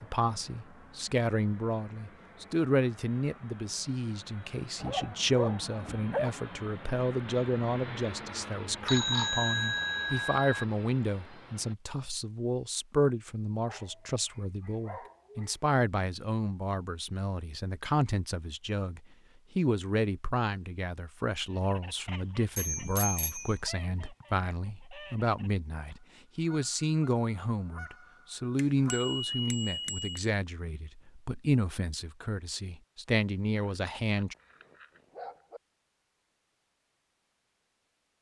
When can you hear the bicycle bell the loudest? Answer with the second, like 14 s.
9 s.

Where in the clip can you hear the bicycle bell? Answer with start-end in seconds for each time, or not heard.
8.8-10.7, 22.6-23.6, 28.6-30.2.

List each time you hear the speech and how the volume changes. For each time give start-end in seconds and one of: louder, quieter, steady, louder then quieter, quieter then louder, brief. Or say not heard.
0.0-34.4 steady.